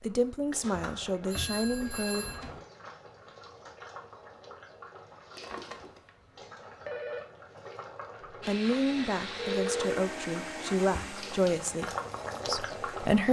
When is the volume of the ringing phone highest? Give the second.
10 s.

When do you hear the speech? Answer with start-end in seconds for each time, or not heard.
0.0-2.2, 8.4-13.2.